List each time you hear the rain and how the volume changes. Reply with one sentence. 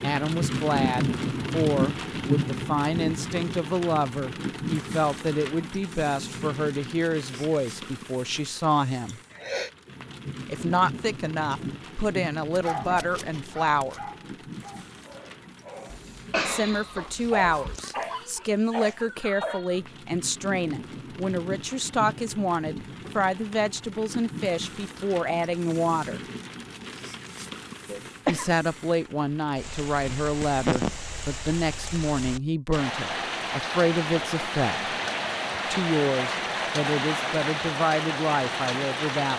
The rain can be heard from 0.0 to 39.3 s, getting quieter then louder.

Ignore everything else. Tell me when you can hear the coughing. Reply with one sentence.
You can hear the coughing from 9.1 to 9.7 s, from 15.9 to 17.8 s and from 27.9 to 28.5 s.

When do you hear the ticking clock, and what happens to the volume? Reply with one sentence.
The ticking clock can't be heard in this clip.